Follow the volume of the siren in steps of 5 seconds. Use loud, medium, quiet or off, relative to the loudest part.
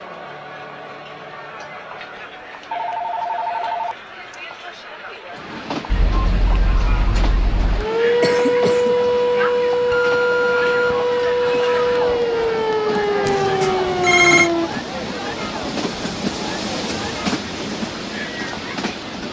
off, loud, loud, off.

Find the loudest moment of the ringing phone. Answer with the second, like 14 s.
14 s.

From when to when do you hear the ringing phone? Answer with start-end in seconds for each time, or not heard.
2.7-4.3, 9.9-11.1, 13.2-14.5.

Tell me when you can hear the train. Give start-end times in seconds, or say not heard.
5.3-19.2.